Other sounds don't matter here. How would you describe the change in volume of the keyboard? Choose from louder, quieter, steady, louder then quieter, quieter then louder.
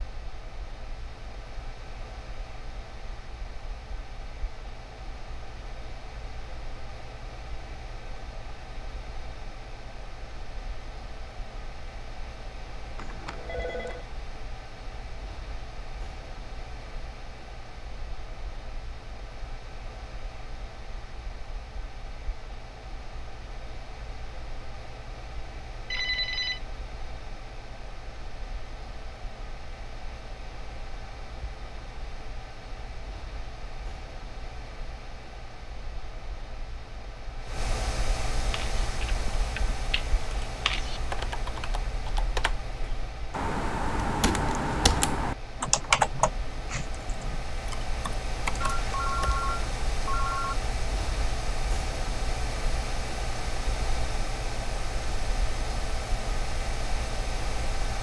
louder then quieter.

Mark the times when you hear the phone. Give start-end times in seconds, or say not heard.
12.9-14.1, 25.9-26.6, 48.6-50.5.